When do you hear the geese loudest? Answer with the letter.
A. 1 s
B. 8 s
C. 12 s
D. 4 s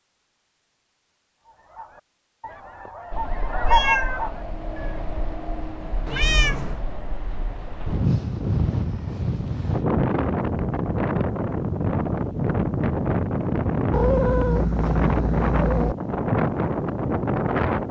D.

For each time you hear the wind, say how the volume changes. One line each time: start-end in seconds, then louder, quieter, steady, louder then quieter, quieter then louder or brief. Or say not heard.
3.1-17.8 louder.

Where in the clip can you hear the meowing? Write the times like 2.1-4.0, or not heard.
3.6-4.2, 6.0-6.8, 13.9-15.9.